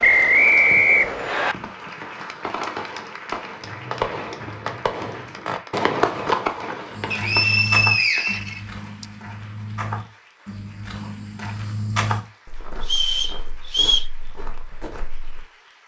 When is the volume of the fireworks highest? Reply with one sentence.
The volume of the fireworks peaks at 6 seconds.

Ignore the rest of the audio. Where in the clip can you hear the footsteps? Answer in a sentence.
You can hear the footsteps from 6.9 to 15.4 s.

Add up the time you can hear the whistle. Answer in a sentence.
The whistle can be heard for 5 seconds in total.